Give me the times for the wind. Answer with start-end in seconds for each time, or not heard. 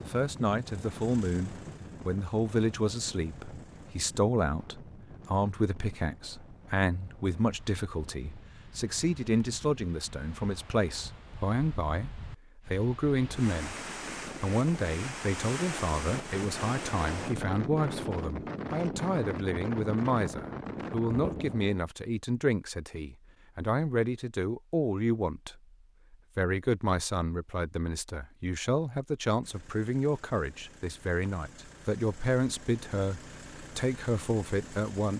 0.0-21.8.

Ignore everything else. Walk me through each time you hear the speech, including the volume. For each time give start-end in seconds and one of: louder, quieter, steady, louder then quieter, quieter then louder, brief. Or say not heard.
0.0-35.1 steady.